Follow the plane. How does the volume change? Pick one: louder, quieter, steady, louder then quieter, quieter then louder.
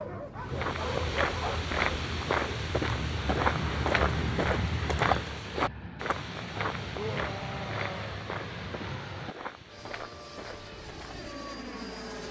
louder then quieter.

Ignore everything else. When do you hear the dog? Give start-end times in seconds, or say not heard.
0.0-1.8.